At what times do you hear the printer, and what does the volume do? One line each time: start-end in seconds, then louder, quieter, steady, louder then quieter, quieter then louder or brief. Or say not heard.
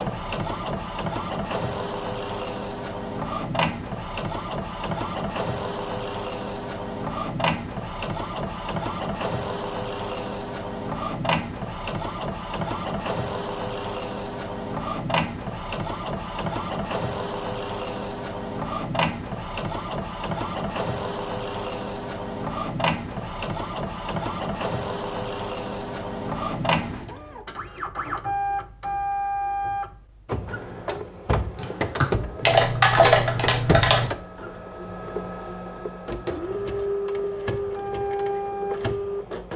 0.0-39.5 steady.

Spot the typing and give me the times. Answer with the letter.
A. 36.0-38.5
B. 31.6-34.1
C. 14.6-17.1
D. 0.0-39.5
B.